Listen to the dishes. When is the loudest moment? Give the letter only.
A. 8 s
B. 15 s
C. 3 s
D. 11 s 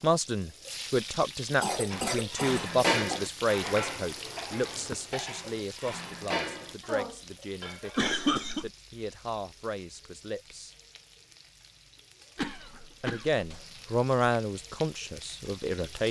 C.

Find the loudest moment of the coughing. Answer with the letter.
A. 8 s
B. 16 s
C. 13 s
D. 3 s
A.